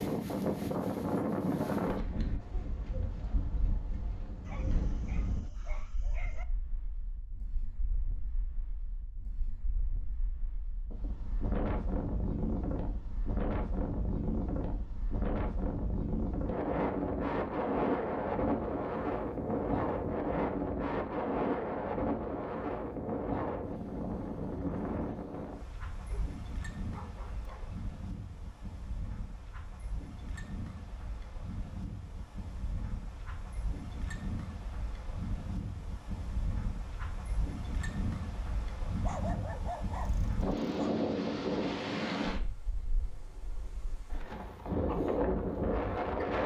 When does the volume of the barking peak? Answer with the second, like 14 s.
39 s.